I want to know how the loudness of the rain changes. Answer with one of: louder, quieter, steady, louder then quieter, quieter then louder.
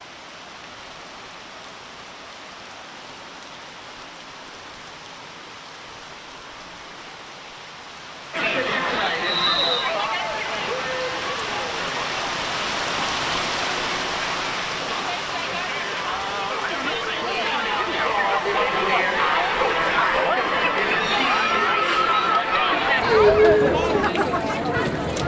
louder then quieter.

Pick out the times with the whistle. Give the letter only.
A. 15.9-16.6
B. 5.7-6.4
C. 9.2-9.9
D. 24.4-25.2
C.